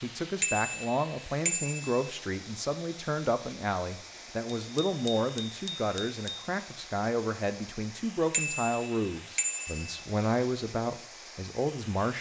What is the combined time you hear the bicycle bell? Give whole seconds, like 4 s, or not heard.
5 s.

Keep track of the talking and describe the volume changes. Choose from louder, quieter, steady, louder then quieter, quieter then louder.
steady.